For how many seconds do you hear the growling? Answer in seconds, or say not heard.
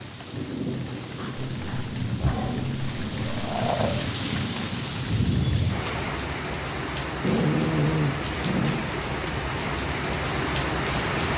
4 s.